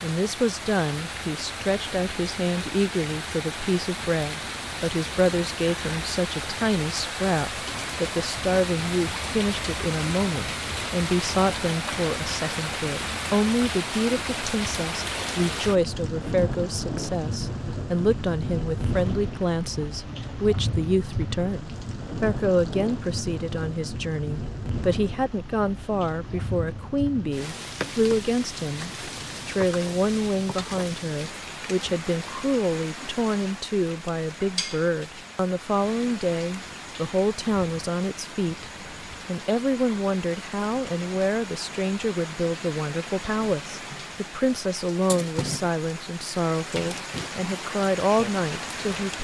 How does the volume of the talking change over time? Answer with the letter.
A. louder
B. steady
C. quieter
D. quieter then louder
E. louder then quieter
B.